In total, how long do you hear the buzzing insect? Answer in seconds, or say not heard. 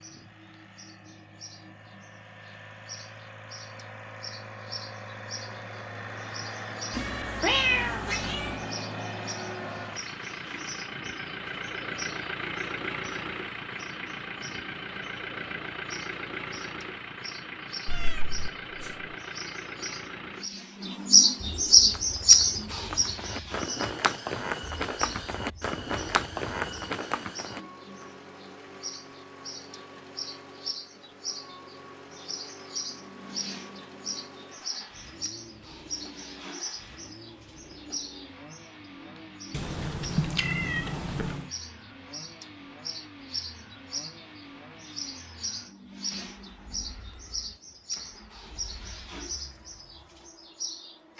not heard.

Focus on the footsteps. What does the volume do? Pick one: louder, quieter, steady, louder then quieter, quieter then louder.
louder.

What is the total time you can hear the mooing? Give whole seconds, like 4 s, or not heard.
not heard.